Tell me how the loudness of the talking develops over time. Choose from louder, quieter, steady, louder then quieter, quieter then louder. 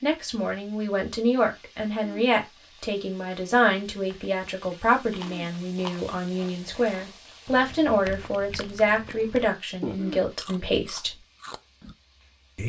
steady.